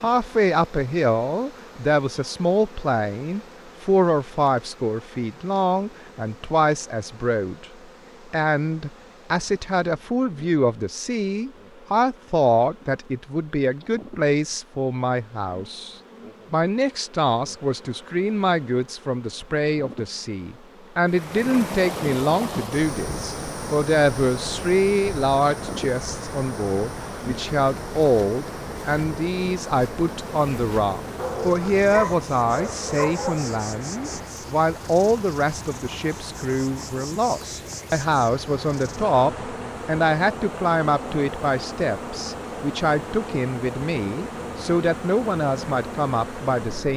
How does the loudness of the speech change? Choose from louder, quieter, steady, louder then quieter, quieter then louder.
steady.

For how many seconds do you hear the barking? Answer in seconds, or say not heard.
2 s.